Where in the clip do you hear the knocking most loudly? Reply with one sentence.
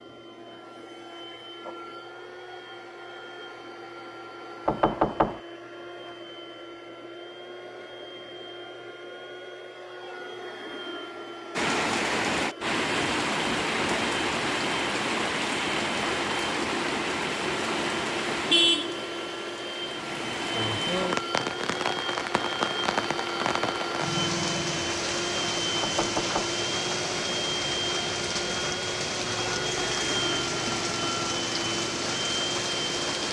The loudest moment of the knocking is at 5 seconds.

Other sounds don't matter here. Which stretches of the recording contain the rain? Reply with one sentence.
You can hear the rain from 11.6 to 33.2 s.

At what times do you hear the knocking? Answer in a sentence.
The knocking can be heard from 4.7 to 5.4 s and from 25.8 to 26.6 s.